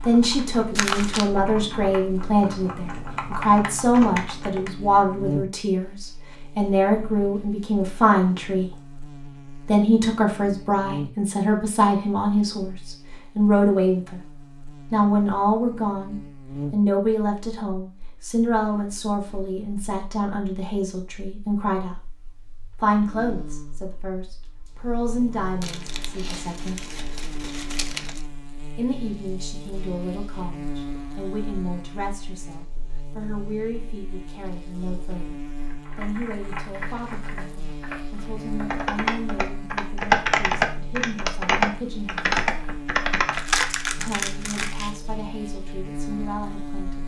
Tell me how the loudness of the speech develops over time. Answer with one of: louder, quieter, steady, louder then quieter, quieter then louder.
quieter.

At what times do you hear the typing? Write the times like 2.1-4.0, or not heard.
0.0-4.7, 35.6-43.6.